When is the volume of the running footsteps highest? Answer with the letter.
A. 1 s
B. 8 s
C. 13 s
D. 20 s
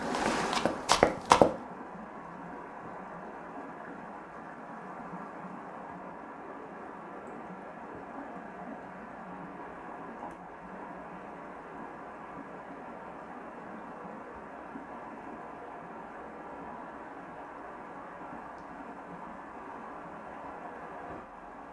A.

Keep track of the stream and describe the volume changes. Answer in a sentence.
The volume of the stream stays about the same.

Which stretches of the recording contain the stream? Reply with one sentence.
You can hear the stream from 0.0 to 21.6 s.